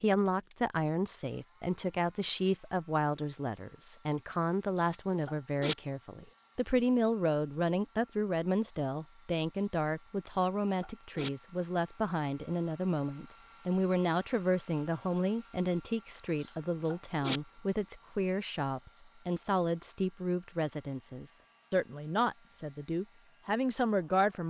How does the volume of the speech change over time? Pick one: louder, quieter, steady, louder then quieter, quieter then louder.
steady.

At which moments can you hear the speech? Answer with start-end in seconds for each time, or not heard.
0.0-24.4.